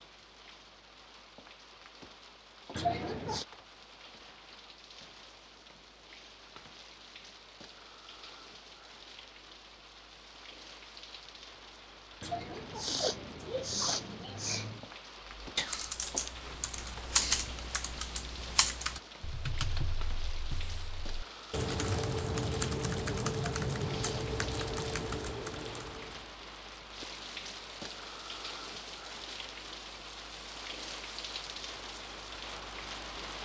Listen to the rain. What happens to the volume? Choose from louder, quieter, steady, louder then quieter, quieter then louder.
louder.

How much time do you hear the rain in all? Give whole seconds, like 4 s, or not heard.
33 s.